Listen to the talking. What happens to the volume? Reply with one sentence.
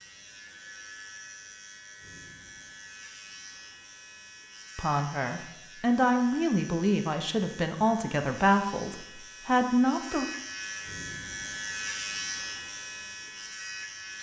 The volume of the talking stays about the same.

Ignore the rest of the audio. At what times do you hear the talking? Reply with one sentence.
The talking can be heard from 4.8 to 10.2 s.